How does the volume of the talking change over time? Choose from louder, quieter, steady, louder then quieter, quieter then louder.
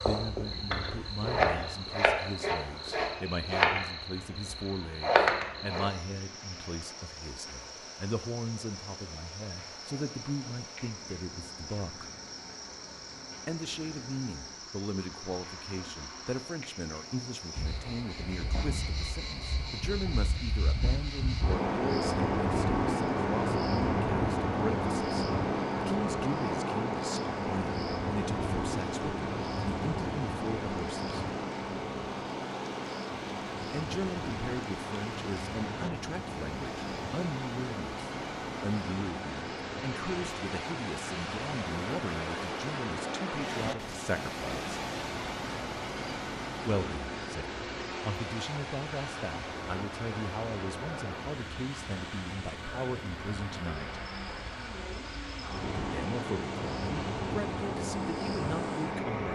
steady.